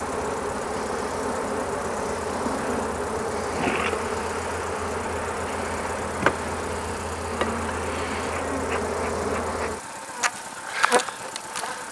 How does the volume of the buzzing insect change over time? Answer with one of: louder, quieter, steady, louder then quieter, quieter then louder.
steady.